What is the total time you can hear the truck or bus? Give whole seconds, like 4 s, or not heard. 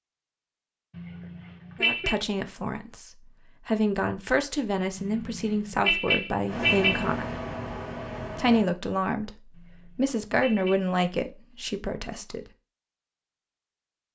2 s.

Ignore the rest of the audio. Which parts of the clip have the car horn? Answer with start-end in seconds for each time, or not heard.
0.9-2.1, 5.0-7.2, 9.5-10.8.